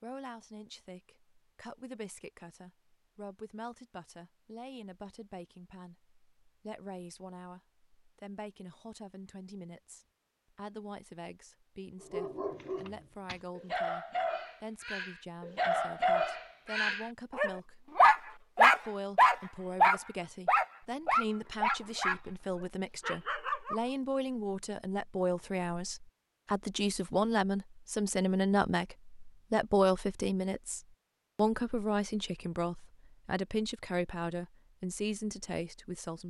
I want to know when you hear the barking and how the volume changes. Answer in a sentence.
The barking can be heard from 12.0 to 23.9 s, getting louder then quieter.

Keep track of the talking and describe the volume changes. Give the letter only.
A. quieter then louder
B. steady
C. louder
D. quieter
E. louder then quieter
C.